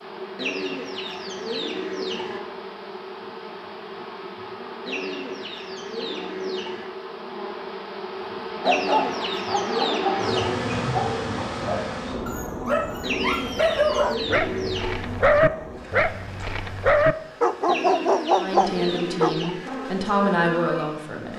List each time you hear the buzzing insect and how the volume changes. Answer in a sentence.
The buzzing insect can be heard from 0.0 to 21.3 s, getting louder then quieter.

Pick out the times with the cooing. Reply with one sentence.
The cooing can be heard from 0.3 to 2.4 s, from 4.8 to 6.8 s, from 8.7 to 10.7 s, from 13.0 to 15.1 s and from 17.6 to 19.7 s.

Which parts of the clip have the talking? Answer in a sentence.
The talking can be heard from 18.4 to 21.3 s.